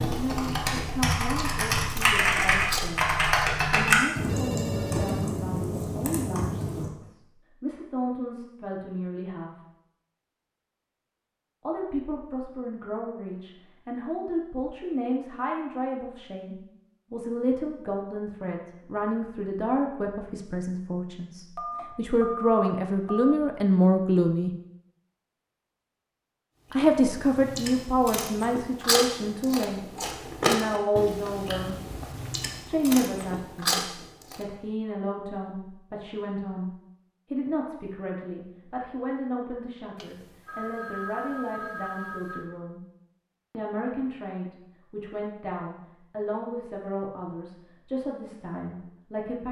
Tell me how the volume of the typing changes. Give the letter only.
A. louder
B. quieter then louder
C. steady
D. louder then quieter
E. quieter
D.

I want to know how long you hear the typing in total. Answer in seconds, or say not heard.
7 s.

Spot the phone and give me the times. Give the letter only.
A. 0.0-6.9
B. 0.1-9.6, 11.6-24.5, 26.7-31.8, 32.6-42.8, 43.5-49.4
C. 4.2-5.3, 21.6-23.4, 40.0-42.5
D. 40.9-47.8
C.